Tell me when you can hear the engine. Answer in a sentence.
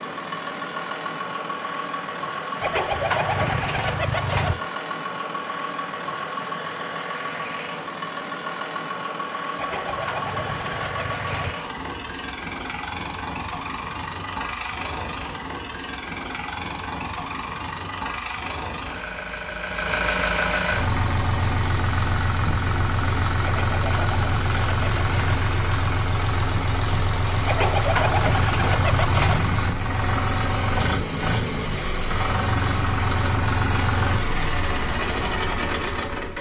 The engine can be heard from 0.0 to 36.3 s.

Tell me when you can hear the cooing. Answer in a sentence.
The cooing can be heard from 2.6 to 4.5 s, from 9.6 to 11.6 s, from 23.4 to 25.4 s and from 27.4 to 29.4 s.